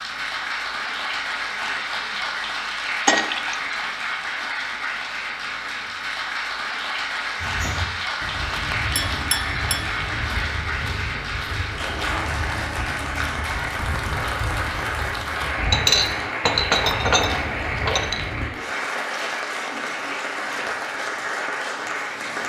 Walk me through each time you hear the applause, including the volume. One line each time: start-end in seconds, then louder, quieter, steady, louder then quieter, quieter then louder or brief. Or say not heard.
0.0-22.4 steady.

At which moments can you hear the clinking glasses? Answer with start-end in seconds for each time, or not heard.
3.0-3.8, 8.9-9.9, 15.7-18.2.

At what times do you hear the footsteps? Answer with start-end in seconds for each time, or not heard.
7.4-18.4.